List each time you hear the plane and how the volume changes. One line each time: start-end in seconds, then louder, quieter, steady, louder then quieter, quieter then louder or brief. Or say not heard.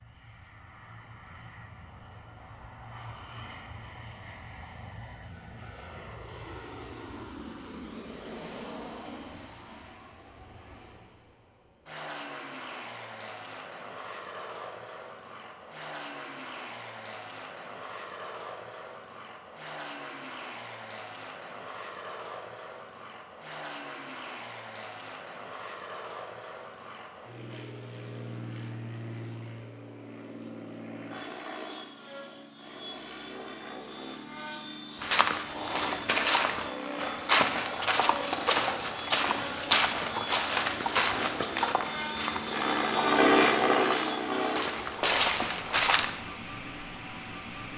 0.0-47.7 louder.